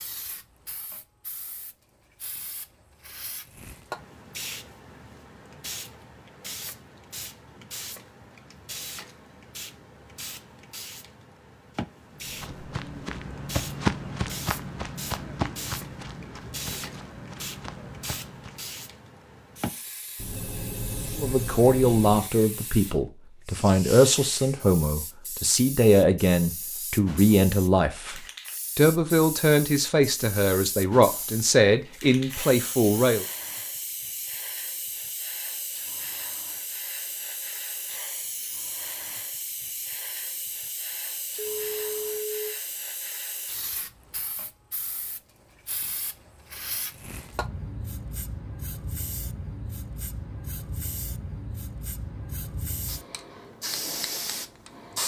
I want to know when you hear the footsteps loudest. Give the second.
14 s.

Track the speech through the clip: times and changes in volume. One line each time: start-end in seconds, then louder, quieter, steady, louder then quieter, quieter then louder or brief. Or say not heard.
21.1-33.2 steady.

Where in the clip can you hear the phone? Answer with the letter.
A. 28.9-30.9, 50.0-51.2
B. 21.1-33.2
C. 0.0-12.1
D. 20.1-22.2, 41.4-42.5
D.